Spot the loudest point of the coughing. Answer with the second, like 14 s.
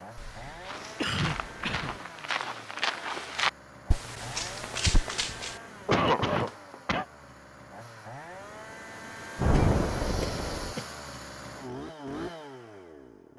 6 s.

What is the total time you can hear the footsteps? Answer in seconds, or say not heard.
6 s.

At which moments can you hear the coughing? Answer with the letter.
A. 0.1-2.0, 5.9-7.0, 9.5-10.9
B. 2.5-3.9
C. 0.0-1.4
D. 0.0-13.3
A.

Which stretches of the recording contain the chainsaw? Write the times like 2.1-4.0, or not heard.
0.0-13.3.